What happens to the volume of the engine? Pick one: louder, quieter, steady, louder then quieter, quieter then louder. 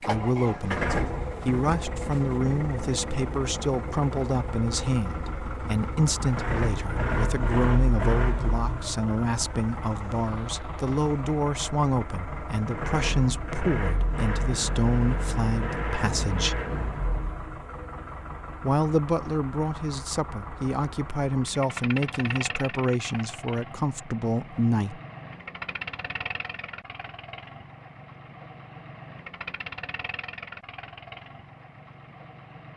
quieter.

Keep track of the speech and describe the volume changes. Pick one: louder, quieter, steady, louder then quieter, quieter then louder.
steady.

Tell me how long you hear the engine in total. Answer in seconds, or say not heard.
33 s.